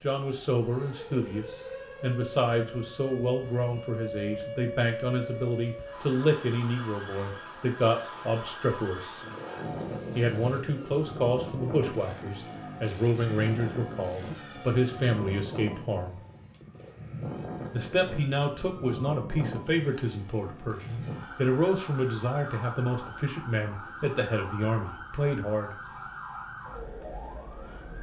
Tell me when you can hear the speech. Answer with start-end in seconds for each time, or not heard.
0.0-9.2, 10.2-16.2, 17.7-25.8.